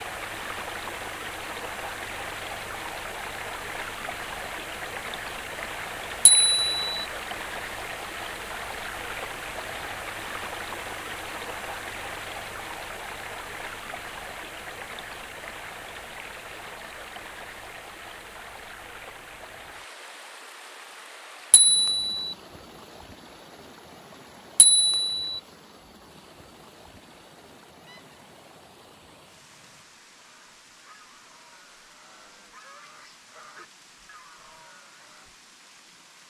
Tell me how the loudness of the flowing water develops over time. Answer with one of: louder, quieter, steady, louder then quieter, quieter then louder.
quieter.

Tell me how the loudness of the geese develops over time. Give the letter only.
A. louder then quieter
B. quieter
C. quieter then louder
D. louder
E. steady
D.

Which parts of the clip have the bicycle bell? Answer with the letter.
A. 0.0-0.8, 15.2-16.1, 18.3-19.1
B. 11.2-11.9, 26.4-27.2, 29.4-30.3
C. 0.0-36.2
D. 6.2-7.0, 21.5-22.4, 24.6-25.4
D.